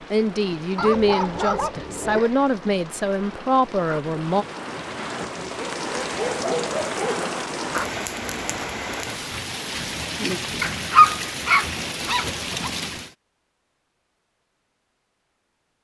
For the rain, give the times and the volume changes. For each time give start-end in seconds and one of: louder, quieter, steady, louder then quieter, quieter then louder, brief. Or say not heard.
0.0-13.2 louder.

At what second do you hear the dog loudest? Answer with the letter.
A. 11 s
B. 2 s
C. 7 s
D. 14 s
A.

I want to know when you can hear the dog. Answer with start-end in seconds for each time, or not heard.
0.8-2.3, 5.5-7.2, 10.6-12.7.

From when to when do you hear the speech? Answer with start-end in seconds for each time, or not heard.
0.1-4.5.